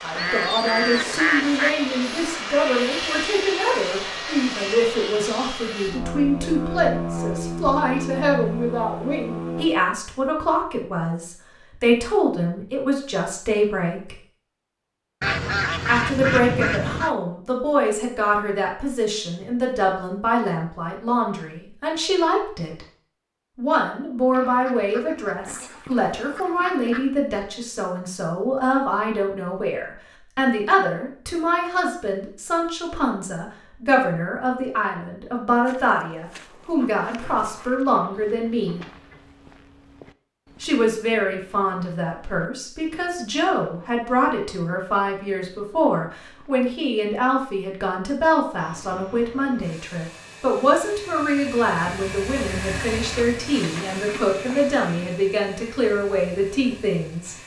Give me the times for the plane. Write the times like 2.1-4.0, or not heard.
0.0-9.7, 48.5-57.4.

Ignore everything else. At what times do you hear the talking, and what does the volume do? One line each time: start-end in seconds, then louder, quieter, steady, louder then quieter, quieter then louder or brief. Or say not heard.
0.0-14.2 steady
15.8-22.9 steady
23.6-38.9 steady
40.6-57.4 steady.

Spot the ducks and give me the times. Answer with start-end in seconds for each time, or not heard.
0.1-1.7, 15.2-17.1, 24.3-27.1, 36.8-39.3, 52.6-55.2.